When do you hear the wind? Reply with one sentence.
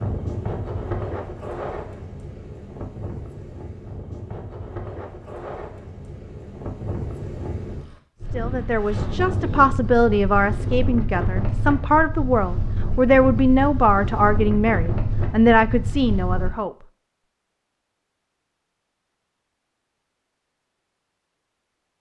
The wind can be heard from 0.0 to 16.5 s.